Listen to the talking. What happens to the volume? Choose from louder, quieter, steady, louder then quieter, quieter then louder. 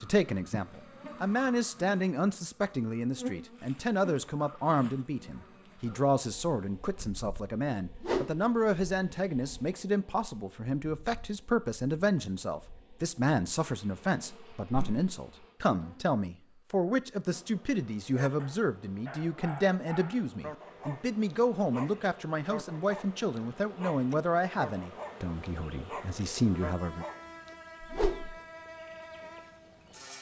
steady.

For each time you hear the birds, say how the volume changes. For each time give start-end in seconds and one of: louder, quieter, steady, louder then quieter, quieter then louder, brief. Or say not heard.
not heard.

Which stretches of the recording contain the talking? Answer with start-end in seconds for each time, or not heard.
0.0-27.1.